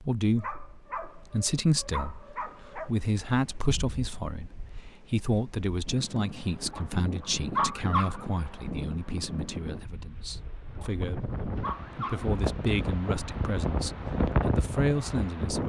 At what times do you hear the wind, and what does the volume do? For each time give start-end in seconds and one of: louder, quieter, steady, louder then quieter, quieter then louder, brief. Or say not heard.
0.0-15.6 louder.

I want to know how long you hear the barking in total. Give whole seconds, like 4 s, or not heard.
6 s.